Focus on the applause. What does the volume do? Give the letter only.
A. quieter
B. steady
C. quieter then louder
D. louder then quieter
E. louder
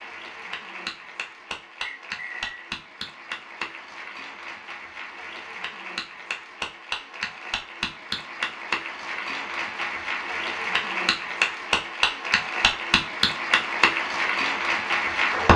E.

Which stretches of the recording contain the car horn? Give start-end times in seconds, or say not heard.
not heard.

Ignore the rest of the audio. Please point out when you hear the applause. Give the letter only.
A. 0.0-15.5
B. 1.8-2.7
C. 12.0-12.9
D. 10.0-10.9
A.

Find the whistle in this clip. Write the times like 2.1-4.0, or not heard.
1.8-2.7.